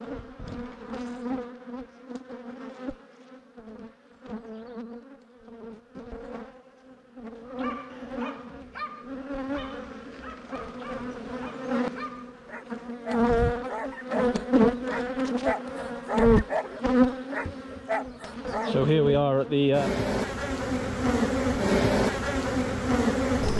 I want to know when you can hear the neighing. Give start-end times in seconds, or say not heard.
not heard.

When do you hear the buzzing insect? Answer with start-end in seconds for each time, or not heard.
0.0-23.5.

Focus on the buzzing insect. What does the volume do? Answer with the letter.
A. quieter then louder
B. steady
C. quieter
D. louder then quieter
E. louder
E.